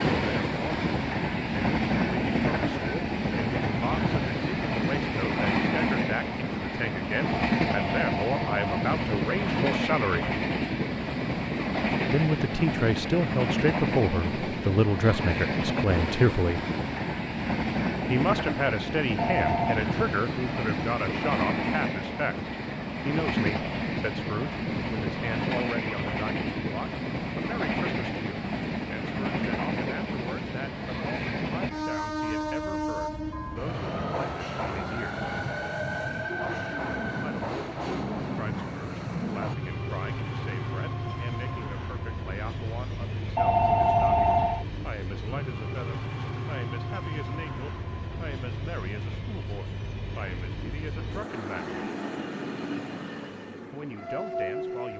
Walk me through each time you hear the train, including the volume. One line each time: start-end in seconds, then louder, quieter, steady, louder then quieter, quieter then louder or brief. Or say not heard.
0.0-54.9 quieter.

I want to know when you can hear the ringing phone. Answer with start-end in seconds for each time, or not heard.
7.5-8.9, 19.1-19.8, 43.4-44.6.